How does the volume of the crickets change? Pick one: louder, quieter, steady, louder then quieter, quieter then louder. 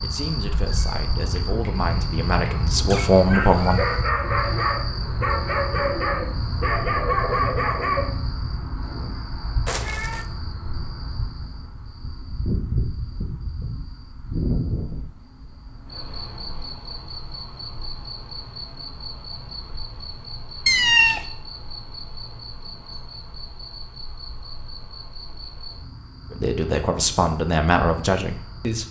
quieter.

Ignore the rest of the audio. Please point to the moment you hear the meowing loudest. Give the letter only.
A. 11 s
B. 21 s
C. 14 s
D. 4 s
B.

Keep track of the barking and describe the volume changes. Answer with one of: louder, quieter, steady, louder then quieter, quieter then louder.
louder.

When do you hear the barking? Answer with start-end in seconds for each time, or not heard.
1.1-8.2.